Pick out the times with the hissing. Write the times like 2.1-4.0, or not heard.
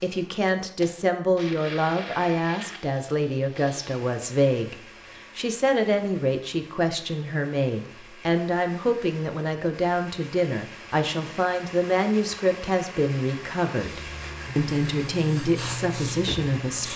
13.8-16.9.